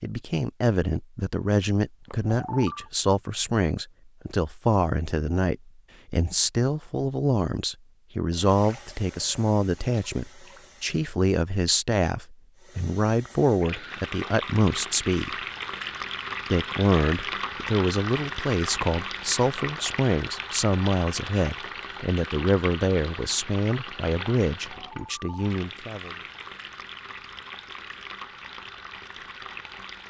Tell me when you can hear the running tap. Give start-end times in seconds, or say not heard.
8.3-11.2, 12.6-30.0.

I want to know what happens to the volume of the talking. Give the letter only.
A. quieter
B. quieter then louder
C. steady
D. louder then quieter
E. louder
C.